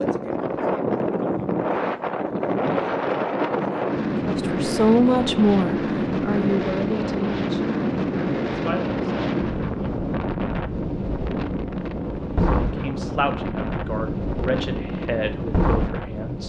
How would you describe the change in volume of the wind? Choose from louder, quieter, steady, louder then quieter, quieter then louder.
steady.